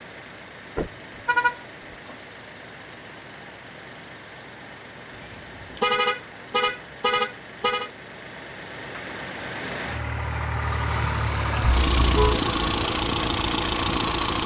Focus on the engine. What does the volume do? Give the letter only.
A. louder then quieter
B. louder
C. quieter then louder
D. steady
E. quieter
B.